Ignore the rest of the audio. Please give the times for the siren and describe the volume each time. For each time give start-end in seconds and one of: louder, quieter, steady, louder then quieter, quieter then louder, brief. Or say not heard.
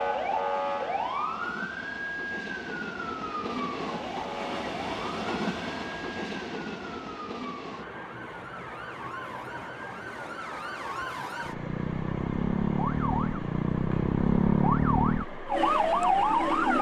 0.0-16.7 quieter then louder.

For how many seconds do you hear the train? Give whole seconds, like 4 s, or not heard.
17 s.